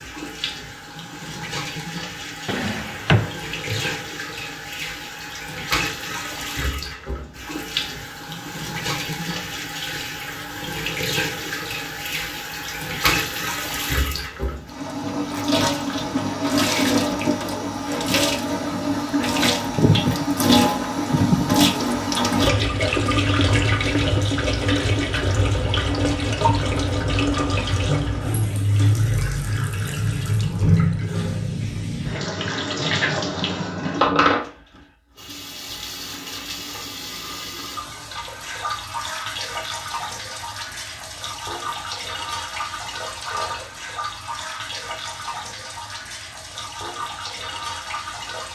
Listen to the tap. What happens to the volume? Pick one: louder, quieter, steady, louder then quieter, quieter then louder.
louder then quieter.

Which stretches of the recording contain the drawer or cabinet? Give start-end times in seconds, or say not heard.
2.5-4.0.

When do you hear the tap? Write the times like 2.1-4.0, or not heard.
0.0-48.5.